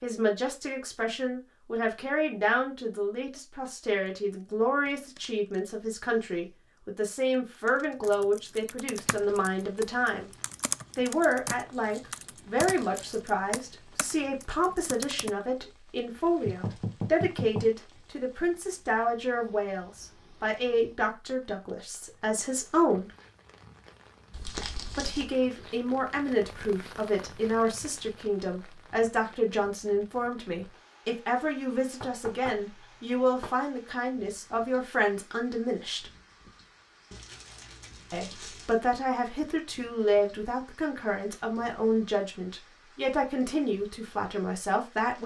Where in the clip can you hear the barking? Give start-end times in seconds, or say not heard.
not heard.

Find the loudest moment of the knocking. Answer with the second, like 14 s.
17 s.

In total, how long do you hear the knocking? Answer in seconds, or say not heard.
3 s.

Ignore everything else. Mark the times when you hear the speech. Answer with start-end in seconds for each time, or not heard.
0.0-10.3, 10.9-23.1, 24.9-36.1, 38.1-45.2.